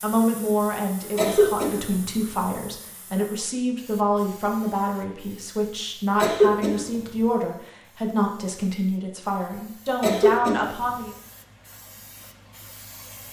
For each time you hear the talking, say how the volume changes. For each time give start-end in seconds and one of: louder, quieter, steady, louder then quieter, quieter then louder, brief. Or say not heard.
0.0-11.1 steady.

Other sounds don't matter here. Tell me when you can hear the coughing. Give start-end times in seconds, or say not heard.
1.1-1.7, 6.2-6.7, 10.0-10.6.